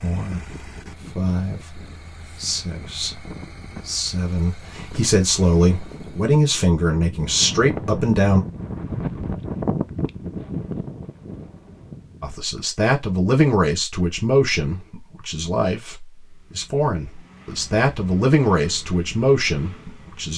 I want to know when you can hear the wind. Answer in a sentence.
The wind can be heard from 0.1 to 12.4 s.